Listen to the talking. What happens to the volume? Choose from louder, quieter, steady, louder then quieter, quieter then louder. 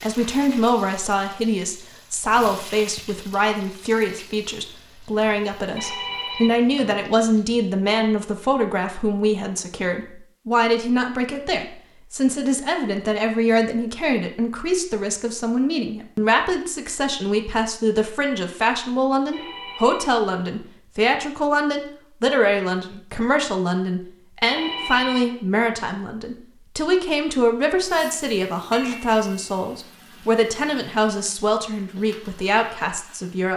steady.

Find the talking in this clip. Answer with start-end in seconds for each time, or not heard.
0.0-33.5.